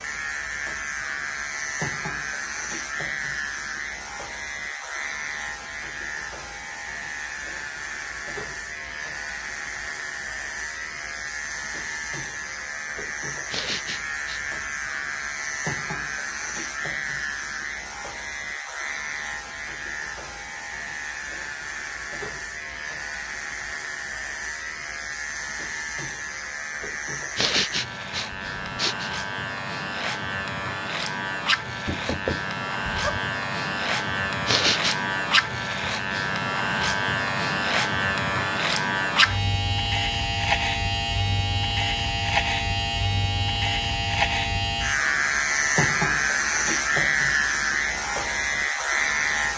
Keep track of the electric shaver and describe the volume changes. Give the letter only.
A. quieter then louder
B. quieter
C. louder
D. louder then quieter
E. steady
C.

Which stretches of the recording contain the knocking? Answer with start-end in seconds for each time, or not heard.
31.9-33.2.